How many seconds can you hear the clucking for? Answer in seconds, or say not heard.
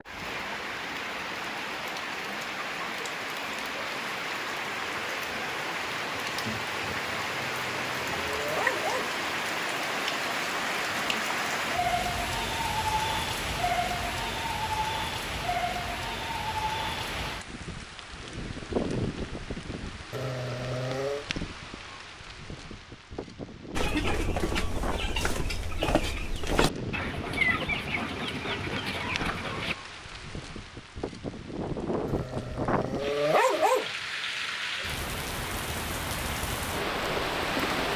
6 s.